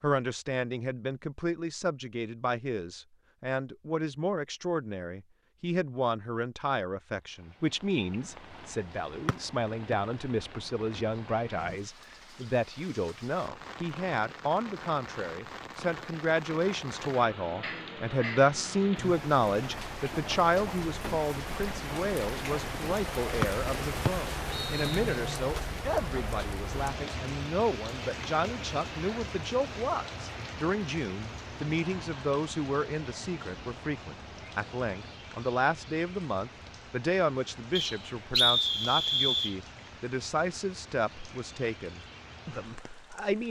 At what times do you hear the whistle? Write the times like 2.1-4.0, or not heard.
9.2-9.9, 24.1-25.0, 37.8-39.5.